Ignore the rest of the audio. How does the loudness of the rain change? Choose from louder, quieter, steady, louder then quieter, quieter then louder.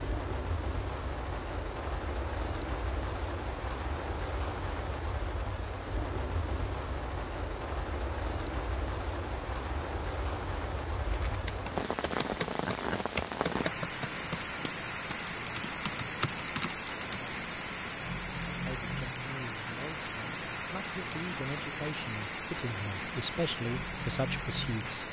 steady.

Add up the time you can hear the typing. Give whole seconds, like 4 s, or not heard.
6 s.